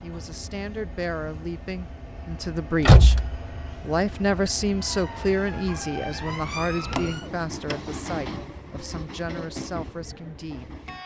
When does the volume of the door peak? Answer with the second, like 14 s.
3 s.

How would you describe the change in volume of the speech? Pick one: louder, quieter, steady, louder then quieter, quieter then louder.
louder then quieter.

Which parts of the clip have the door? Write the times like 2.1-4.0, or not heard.
2.8-3.4, 6.8-7.8.